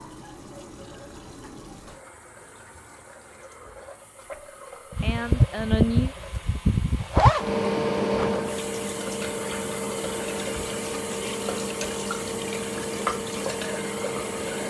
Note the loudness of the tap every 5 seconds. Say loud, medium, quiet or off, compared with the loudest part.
medium, medium, loud.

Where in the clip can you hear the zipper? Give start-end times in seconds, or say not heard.
7.0-8.4.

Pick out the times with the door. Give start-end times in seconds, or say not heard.
not heard.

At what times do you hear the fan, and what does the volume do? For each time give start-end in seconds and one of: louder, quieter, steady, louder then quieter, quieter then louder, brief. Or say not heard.
4.9-14.6 quieter.